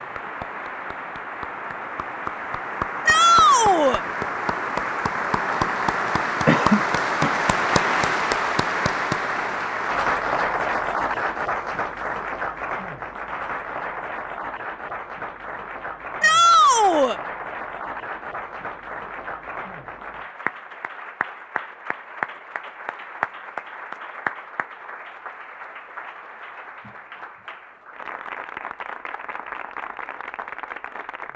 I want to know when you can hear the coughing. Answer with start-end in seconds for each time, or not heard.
6.5-7.3.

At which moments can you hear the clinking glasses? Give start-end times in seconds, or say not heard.
not heard.